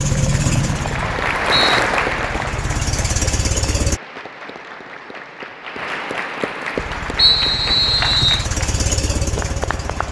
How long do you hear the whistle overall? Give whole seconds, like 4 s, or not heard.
3 s.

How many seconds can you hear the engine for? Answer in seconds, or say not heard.
7 s.